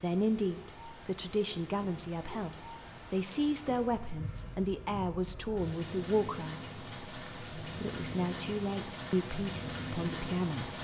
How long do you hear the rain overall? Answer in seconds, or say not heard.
11 s.